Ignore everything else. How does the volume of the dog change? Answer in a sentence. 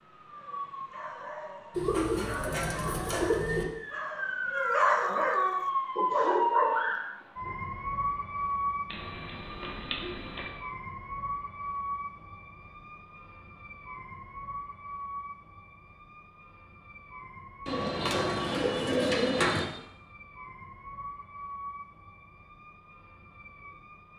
The loudness of the dog goes up.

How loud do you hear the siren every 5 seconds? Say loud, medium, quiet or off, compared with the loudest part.
medium, loud, medium, quiet, quiet.